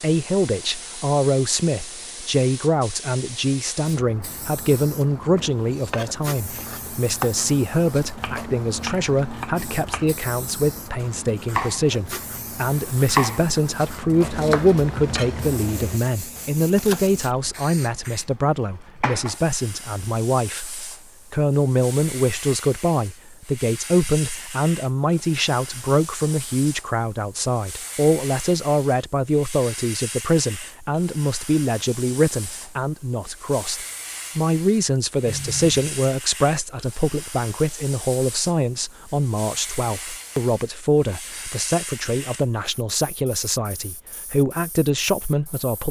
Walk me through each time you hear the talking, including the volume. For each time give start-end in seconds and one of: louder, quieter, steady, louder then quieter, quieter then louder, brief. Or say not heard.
0.0-45.8 steady.